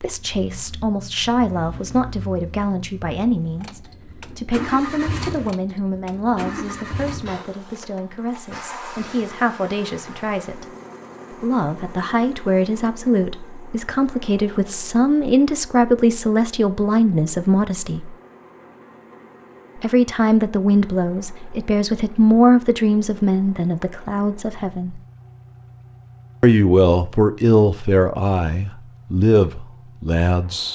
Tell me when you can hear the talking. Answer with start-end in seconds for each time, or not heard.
0.0-10.7, 11.4-18.1, 19.8-25.0, 26.4-30.6.